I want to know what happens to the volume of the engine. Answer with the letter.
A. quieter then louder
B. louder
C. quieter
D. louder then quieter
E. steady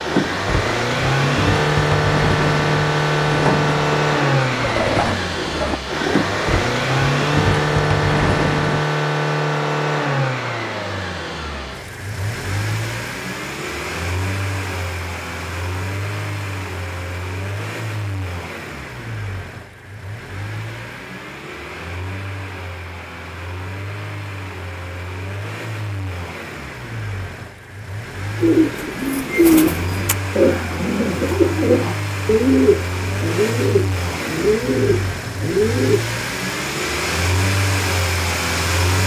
A.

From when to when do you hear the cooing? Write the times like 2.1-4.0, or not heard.
0.1-8.8, 28.4-36.0.